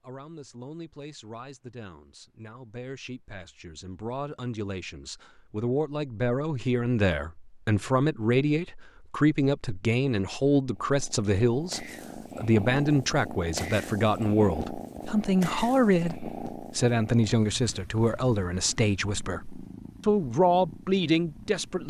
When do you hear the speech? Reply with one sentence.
The speech can be heard from 0.0 to 21.8 s.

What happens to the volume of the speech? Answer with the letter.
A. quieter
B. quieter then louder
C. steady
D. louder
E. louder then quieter
D.